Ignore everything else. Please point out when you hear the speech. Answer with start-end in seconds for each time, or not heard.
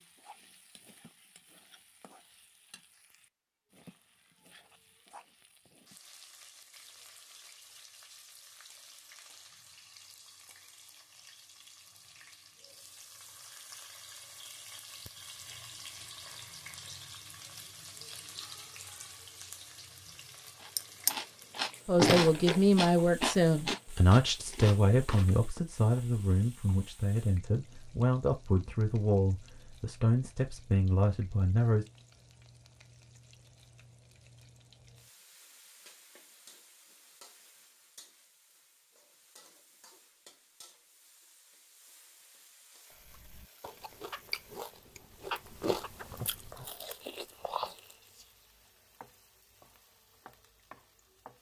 21.9-31.9.